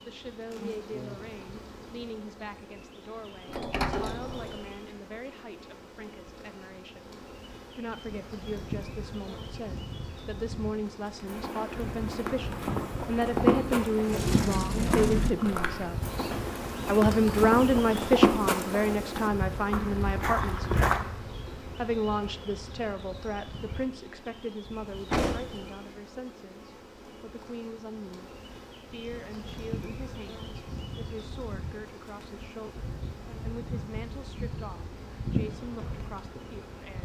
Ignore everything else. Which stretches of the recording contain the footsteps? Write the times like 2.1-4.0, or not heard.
11.2-21.1.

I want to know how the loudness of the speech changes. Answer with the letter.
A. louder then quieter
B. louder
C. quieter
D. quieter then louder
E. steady
A.